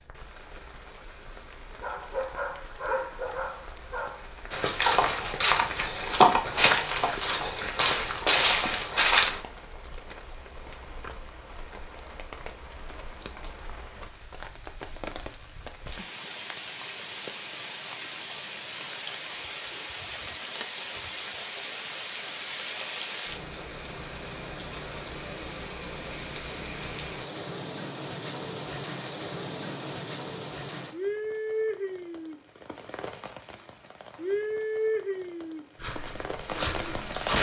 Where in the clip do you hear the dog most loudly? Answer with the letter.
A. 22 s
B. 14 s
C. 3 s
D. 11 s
C.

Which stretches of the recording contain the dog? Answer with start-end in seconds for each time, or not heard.
1.8-4.2.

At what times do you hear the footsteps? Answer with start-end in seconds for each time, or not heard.
4.5-9.4, 35.8-37.3.